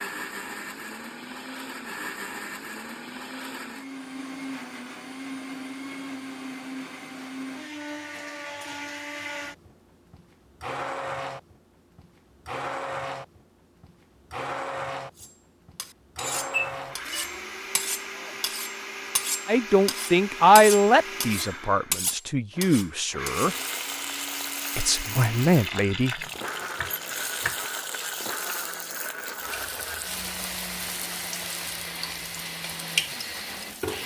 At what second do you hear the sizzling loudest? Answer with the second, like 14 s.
33 s.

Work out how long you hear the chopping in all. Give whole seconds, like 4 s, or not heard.
2 s.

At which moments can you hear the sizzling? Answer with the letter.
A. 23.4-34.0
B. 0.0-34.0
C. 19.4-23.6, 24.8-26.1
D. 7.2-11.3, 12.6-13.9
A.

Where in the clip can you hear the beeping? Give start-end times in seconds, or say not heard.
16.5-17.3.